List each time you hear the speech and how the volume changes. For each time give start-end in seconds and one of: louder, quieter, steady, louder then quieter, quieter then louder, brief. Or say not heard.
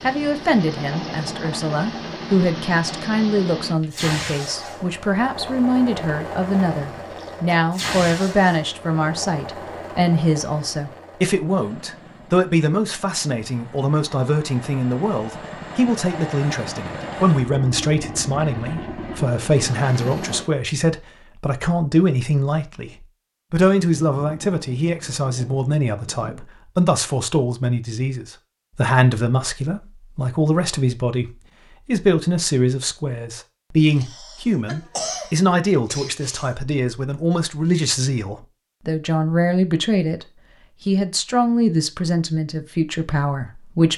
0.0-43.9 steady.